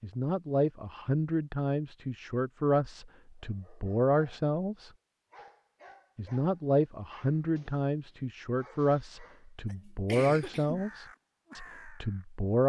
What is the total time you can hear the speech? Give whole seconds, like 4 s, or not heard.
11 s.